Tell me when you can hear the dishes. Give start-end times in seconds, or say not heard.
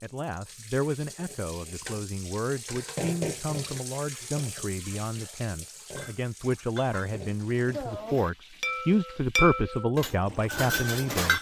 5.9-11.3.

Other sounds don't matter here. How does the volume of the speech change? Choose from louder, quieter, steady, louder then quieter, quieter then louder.
louder.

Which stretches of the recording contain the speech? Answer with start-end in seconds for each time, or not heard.
0.0-11.3.